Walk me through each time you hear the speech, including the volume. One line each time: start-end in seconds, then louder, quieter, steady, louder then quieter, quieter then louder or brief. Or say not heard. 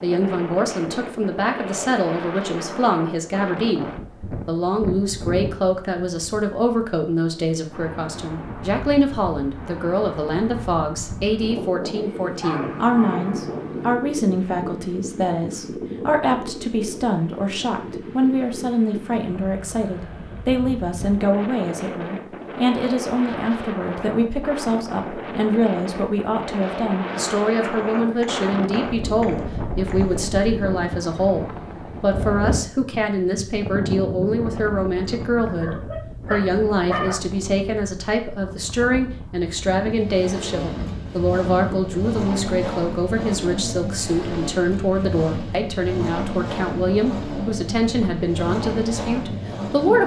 0.0-50.0 steady.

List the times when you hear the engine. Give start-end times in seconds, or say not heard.
39.8-50.0.